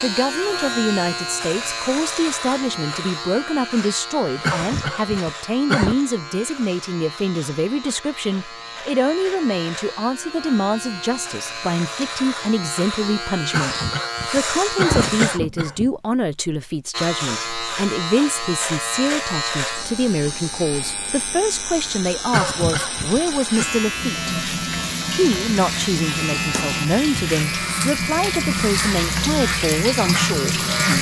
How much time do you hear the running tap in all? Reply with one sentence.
The running tap can be heard for 7 seconds in total.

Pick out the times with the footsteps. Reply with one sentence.
The footsteps can't be heard in this clip.